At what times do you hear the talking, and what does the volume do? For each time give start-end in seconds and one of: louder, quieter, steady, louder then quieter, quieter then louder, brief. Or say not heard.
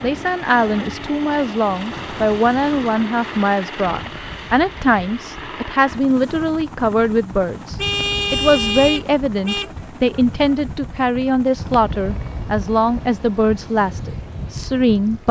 0.0-15.2 steady.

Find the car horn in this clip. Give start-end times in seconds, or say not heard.
7.8-9.7.